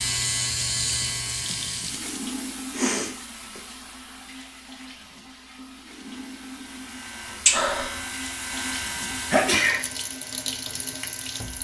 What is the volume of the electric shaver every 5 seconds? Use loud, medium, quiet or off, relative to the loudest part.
loud, loud, quiet.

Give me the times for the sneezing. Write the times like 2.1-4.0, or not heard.
2.7-3.6, 9.1-9.8.